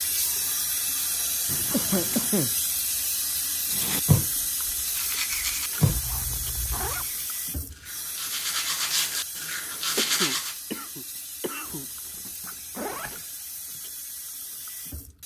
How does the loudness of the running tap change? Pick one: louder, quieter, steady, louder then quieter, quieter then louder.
quieter.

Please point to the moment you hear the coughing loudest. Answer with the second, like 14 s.
2 s.